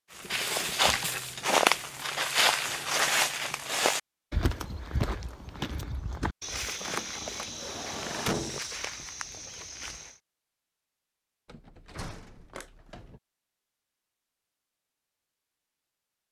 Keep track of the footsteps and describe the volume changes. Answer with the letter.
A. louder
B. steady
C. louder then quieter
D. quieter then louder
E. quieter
E.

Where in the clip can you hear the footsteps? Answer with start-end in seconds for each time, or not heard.
0.1-10.2.